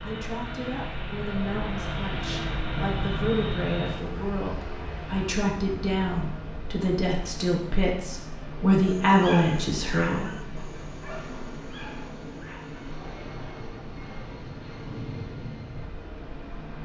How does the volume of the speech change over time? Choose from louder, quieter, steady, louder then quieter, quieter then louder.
louder.